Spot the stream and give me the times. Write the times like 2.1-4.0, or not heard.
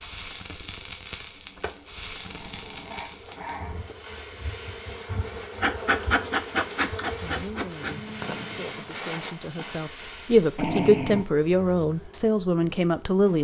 not heard.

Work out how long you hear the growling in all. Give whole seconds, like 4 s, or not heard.
3 s.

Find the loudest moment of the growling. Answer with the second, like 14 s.
11 s.